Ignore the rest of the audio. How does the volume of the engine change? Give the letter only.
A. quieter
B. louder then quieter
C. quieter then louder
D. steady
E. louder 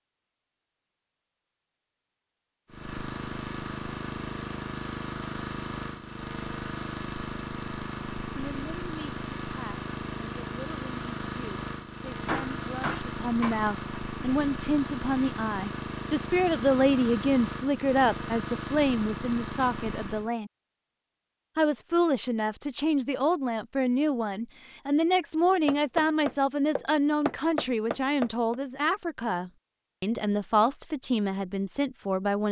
D.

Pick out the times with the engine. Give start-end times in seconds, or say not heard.
2.6-20.3.